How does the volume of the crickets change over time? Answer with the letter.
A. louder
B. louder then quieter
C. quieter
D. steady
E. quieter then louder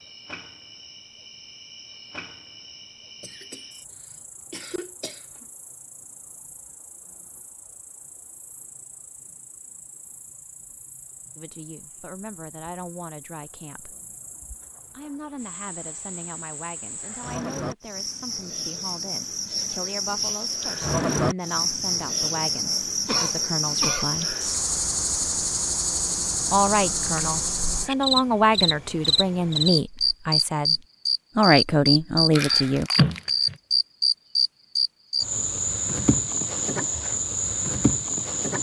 A.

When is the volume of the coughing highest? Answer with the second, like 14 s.
33 s.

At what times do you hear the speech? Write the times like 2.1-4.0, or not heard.
11.3-13.9, 14.9-24.4, 26.4-32.9.